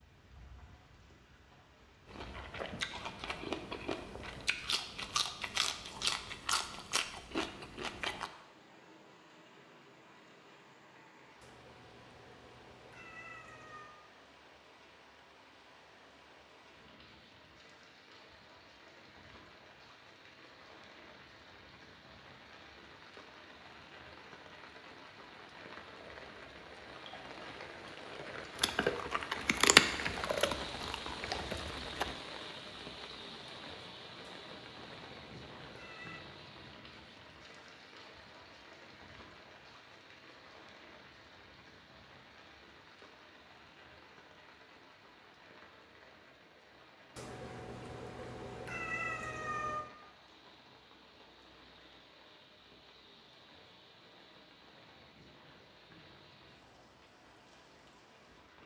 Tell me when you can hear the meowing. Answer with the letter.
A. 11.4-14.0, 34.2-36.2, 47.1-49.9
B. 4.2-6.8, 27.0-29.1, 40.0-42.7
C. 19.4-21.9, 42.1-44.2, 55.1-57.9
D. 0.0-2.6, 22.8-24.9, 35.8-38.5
A.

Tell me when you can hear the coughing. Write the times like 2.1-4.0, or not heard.
not heard.